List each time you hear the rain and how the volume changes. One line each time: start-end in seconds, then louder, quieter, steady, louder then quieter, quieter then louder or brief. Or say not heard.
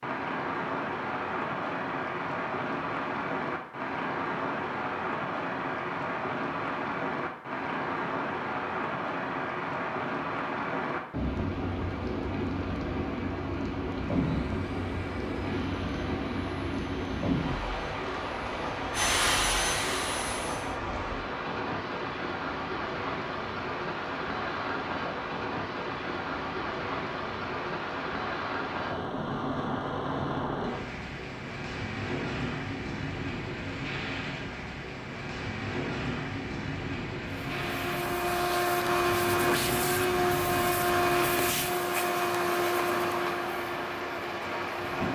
0.0-45.0 steady.